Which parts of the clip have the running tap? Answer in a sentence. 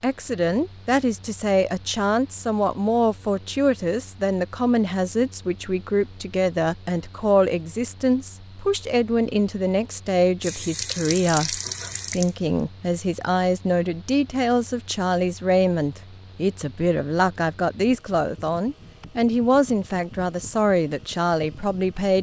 The running tap can be heard from 10.4 to 12.3 s.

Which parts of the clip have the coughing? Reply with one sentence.
You can't hear the coughing here.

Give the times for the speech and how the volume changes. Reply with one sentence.
You can hear the speech from 0.0 to 22.1 s, at a steady volume.